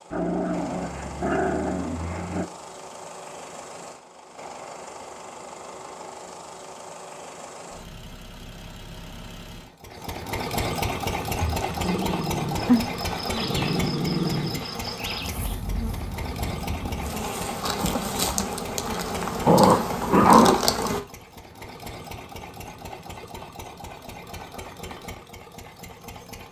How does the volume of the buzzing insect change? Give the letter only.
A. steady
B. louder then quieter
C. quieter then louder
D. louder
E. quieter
D.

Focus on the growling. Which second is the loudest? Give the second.
20 s.